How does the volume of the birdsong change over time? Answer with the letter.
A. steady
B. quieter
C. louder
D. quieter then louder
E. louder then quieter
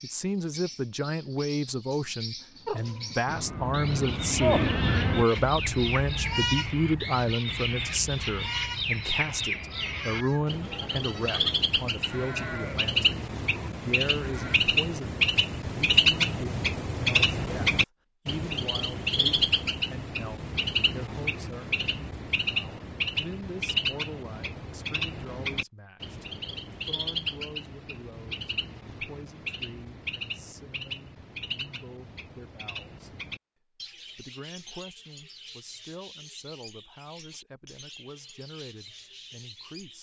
E.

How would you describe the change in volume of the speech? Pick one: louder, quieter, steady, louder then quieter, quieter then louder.
quieter.